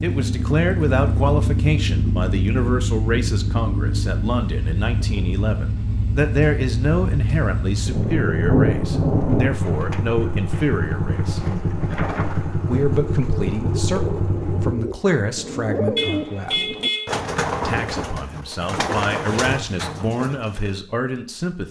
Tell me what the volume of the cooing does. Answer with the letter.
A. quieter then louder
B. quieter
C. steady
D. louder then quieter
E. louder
E.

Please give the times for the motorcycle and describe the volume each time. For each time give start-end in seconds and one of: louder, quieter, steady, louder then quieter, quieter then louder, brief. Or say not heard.
0.0-14.8 steady.